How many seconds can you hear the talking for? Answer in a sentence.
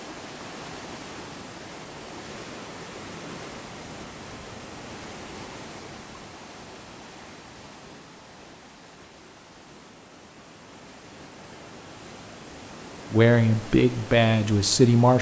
The talking can be heard for 2 seconds in total.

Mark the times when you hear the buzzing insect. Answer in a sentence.
The buzzing insect can't be heard in this clip.